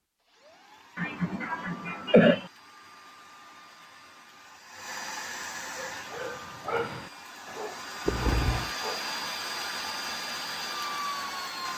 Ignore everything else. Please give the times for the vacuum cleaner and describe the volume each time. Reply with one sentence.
You can hear the vacuum cleaner from 0.2 to 11.7 s, getting louder.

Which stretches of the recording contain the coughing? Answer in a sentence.
You can hear the coughing from 0.9 to 2.5 s and from 8.1 to 8.7 s.